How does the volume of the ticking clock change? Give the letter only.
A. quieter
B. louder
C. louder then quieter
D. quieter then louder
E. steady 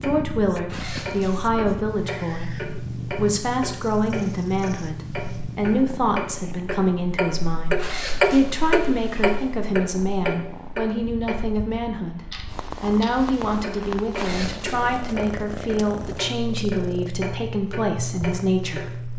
C.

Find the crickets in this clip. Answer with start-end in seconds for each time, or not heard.
not heard.